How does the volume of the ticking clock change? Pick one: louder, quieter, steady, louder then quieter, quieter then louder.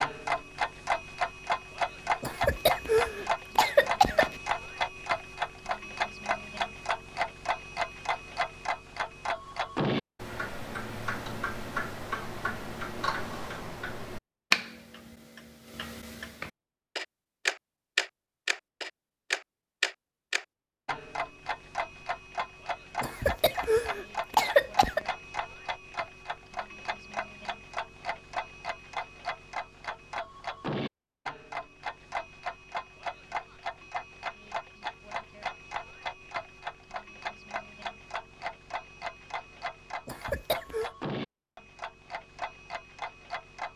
quieter.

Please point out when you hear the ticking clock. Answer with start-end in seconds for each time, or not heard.
0.0-43.7.